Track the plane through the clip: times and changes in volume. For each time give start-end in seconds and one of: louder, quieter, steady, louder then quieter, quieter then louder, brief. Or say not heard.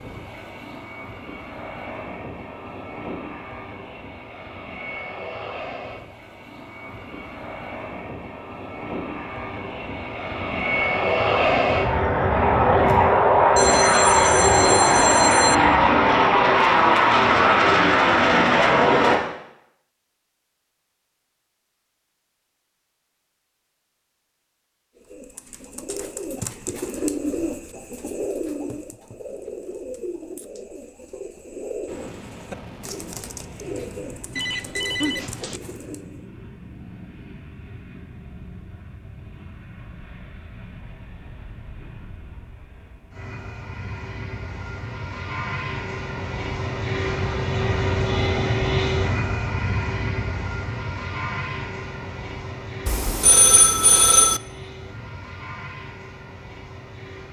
0.0-19.2 louder
31.9-57.2 louder then quieter.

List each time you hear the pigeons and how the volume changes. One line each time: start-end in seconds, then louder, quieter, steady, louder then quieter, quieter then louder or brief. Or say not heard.
24.9-36.2 quieter.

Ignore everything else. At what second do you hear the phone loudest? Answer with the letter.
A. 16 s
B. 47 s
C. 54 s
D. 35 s
C.